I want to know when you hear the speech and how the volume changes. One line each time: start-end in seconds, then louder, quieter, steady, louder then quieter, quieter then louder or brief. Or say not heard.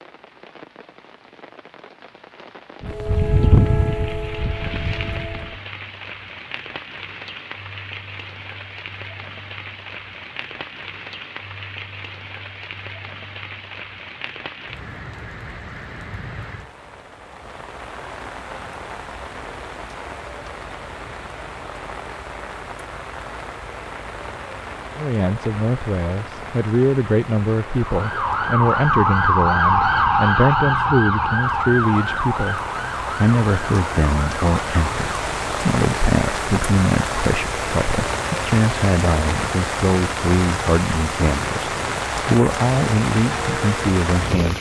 24.9-44.5 steady.